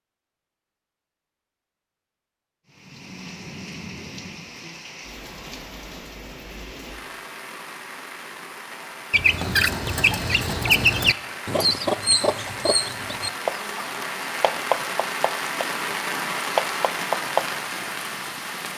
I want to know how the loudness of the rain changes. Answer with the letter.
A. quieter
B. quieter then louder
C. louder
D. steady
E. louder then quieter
C.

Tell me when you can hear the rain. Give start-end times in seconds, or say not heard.
2.6-18.7.